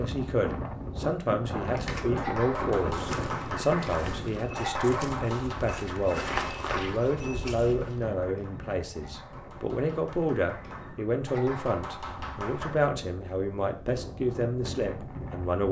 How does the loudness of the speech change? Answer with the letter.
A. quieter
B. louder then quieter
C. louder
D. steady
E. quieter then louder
D.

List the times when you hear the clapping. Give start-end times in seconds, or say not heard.
1.8-12.8.